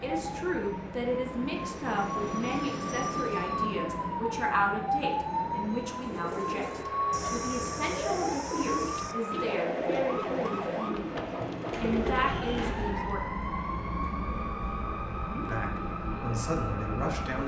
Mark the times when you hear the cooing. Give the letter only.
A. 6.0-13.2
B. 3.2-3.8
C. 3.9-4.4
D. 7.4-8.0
A.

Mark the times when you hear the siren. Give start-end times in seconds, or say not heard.
0.0-17.4.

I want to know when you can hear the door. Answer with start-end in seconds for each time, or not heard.
10.8-11.4.